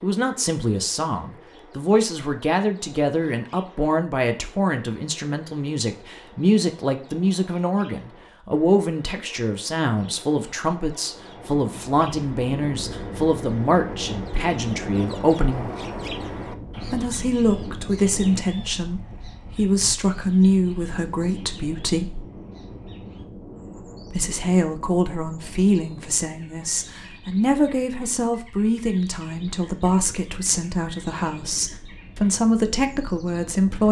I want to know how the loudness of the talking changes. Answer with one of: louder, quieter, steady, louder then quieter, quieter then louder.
steady.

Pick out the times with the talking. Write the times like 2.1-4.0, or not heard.
0.0-15.7, 16.8-22.2, 24.1-33.8.